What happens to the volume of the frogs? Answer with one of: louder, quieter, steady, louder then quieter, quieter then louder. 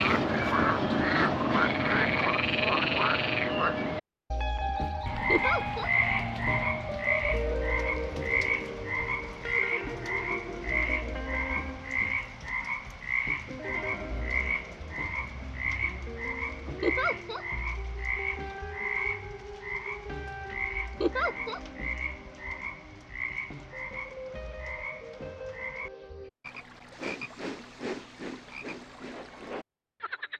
quieter.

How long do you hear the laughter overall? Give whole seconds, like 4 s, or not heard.
2 s.